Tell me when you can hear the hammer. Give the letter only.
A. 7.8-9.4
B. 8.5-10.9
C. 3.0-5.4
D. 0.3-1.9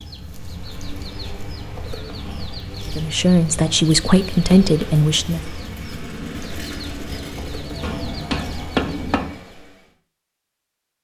A.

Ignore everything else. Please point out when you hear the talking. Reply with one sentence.
You can hear the talking from 3.0 to 5.4 s.